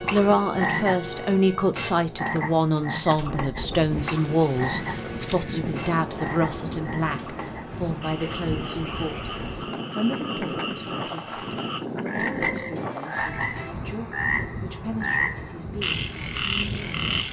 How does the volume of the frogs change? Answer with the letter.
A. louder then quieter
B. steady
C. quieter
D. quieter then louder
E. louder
D.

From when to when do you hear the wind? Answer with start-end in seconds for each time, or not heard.
3.1-17.2.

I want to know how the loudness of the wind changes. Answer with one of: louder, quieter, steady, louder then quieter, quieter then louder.
steady.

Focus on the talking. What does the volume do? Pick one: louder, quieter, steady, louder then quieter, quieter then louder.
quieter.